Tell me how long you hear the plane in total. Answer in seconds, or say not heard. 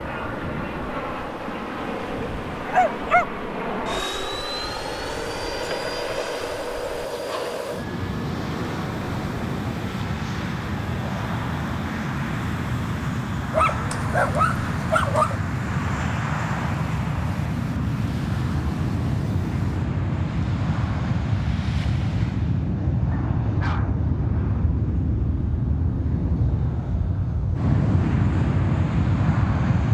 30 s.